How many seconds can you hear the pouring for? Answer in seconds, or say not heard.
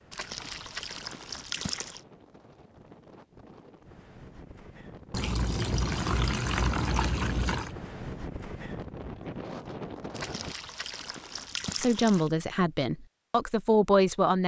7 s.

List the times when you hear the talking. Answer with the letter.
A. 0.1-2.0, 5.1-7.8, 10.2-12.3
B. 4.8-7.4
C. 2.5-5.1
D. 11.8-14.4
D.